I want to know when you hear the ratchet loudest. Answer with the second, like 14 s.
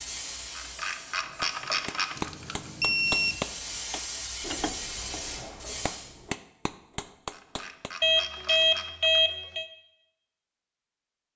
2 s.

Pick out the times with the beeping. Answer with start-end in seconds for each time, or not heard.
2.1-3.4, 8.0-9.7.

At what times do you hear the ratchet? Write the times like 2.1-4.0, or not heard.
0.6-2.3, 7.3-9.2.